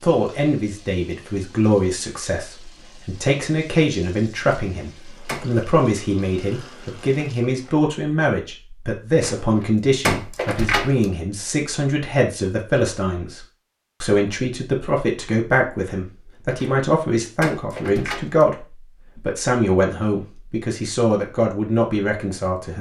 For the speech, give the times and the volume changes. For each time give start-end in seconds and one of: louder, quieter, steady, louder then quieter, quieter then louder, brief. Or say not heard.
0.0-22.7 steady.